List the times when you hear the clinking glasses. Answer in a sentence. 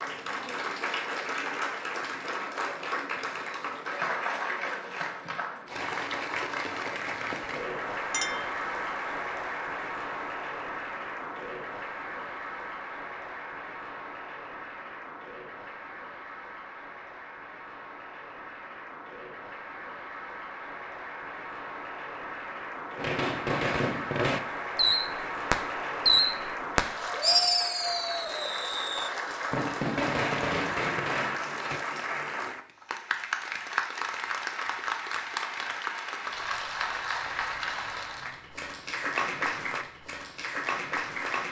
You can hear the clinking glasses from 8.1 to 8.6 s.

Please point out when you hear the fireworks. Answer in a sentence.
The fireworks can be heard from 22.9 to 31.8 s.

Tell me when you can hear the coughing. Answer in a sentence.
The coughing can't be heard in this clip.